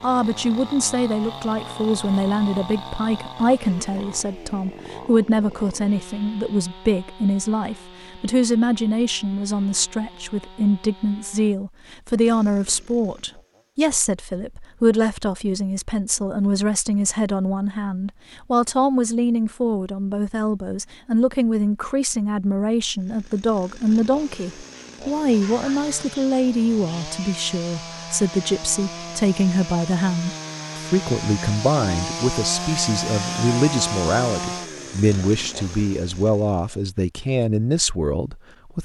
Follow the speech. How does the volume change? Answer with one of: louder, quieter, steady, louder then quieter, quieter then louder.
steady.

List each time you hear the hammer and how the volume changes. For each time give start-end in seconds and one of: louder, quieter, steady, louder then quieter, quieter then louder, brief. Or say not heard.
not heard.